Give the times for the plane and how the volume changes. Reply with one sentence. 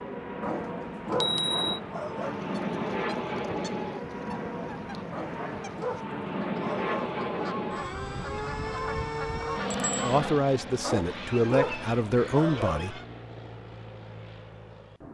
The plane can be heard from 0.0 to 15.0 s, getting quieter.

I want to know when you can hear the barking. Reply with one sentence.
The barking can be heard from 0.4 to 2.4 s, from 5.1 to 7.2 s and from 10.8 to 12.8 s.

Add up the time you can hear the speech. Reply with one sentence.
You can hear the speech for 3 seconds altogether.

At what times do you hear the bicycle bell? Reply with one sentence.
The bicycle bell can be heard from 1.1 to 1.8 s and from 9.7 to 10.2 s.